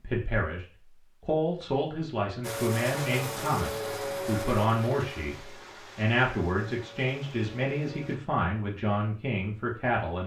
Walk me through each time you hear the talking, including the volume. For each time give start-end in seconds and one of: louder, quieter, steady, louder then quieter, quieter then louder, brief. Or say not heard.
0.0-10.2 steady.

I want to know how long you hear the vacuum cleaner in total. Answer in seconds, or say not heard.
6 s.